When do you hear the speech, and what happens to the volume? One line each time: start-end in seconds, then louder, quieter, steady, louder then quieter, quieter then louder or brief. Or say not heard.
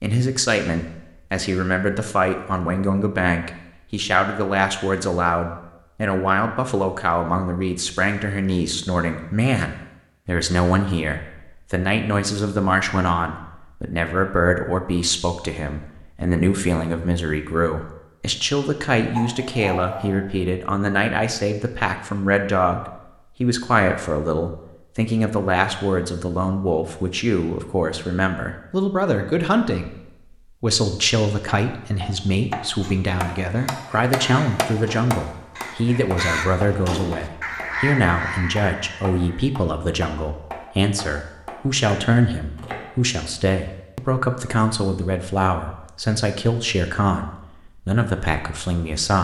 0.0-29.9 steady
30.6-49.1 steady.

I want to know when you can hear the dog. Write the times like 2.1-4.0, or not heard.
19.1-20.4.